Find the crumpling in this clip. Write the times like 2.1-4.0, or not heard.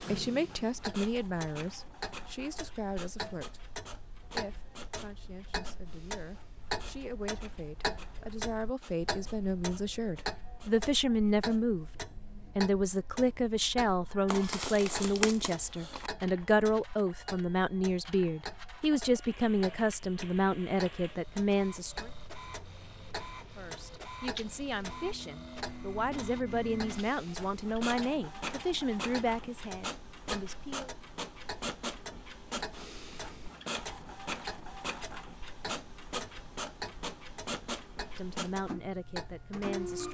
14.2-16.1.